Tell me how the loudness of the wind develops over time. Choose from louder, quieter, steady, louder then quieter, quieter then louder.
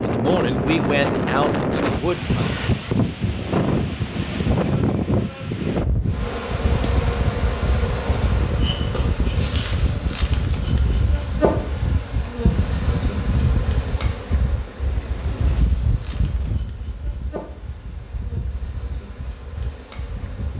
quieter.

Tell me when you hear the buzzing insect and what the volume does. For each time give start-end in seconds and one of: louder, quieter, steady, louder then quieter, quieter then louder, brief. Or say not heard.
6.0-20.5 quieter.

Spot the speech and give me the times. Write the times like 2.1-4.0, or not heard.
0.0-2.5.